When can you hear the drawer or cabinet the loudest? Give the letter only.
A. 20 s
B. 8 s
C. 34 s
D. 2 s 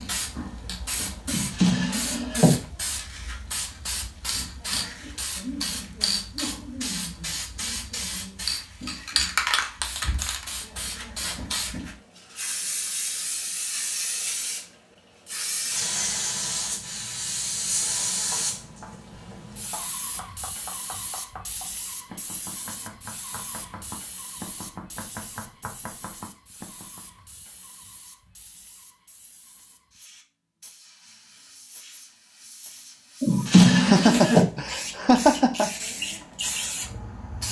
C.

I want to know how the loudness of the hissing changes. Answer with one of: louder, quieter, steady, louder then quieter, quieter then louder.
quieter then louder.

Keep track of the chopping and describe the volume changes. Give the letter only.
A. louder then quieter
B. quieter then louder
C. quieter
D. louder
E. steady
D.